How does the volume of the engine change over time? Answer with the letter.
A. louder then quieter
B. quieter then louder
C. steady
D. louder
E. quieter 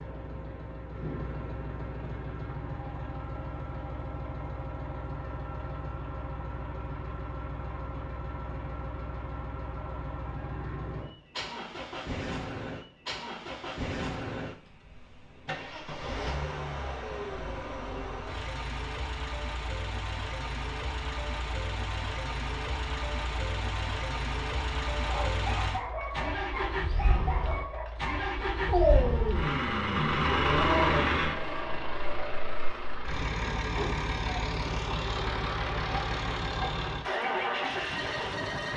D.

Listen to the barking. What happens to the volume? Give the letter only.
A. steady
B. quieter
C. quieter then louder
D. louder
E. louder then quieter
D.